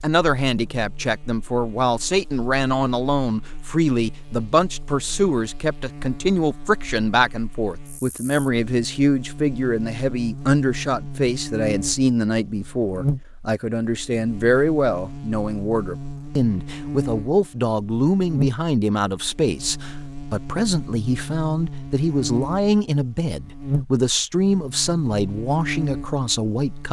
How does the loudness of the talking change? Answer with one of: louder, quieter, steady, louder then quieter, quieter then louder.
steady.